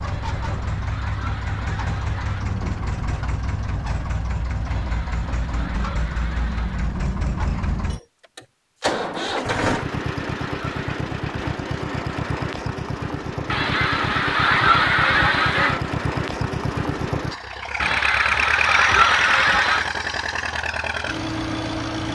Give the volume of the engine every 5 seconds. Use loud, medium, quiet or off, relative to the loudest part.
medium, loud, loud, loud, loud.